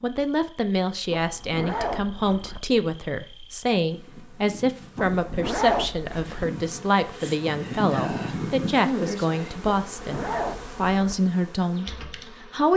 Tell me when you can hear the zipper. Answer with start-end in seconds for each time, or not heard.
1.1-2.6, 5.0-6.5, 9.7-11.2.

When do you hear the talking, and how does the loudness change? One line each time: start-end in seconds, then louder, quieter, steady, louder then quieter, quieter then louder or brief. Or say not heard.
0.0-12.7 steady.